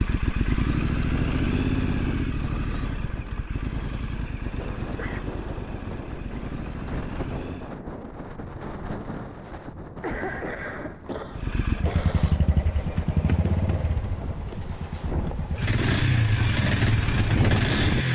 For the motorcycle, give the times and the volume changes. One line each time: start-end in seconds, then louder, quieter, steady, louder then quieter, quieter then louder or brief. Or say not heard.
0.0-7.8 quieter
11.3-18.1 quieter then louder.